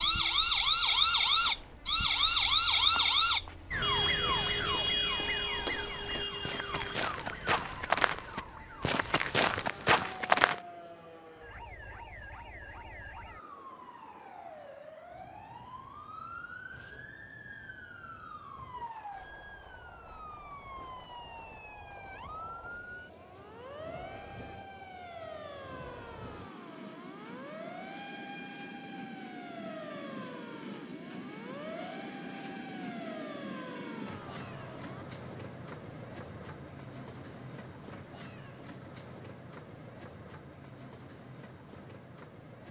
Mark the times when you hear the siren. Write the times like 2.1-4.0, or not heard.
0.0-35.0.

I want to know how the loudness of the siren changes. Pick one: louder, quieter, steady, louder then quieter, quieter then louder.
quieter.